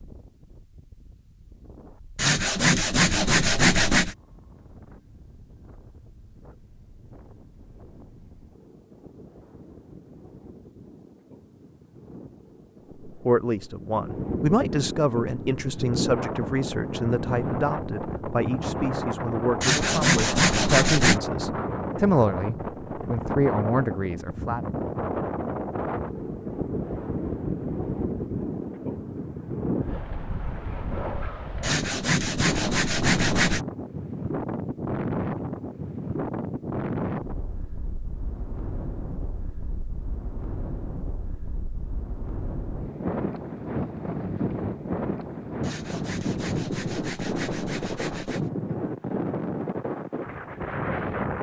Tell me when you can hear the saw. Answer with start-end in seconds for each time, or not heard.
2.1-4.2, 19.6-21.2, 31.6-33.6, 45.6-48.5.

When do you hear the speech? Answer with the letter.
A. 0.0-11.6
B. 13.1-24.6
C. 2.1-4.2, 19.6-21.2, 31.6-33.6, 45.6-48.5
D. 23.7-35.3
B.